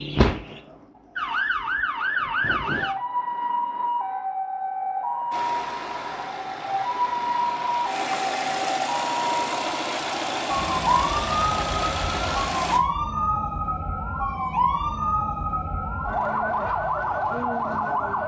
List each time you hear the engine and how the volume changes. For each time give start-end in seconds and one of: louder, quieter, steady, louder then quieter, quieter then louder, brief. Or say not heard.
5.3-12.8 louder.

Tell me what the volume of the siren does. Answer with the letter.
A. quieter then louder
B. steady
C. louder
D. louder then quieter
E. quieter
B.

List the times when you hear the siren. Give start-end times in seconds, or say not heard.
0.0-18.2.